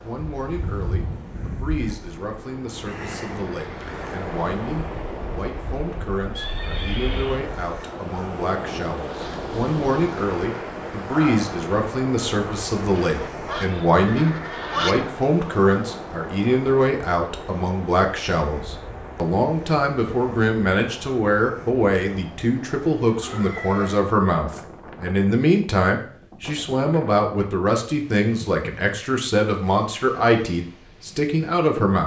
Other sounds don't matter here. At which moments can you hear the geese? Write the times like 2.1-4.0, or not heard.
13.0-15.1.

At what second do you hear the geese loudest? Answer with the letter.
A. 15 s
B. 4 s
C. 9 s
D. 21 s
A.